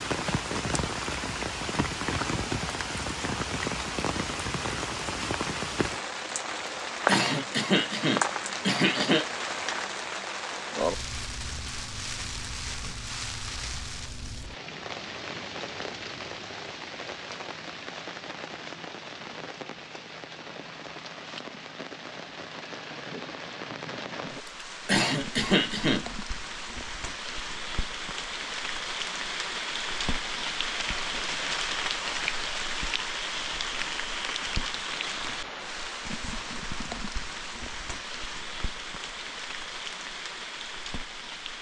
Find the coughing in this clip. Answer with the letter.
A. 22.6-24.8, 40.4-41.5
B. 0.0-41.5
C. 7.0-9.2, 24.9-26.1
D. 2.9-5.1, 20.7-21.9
C.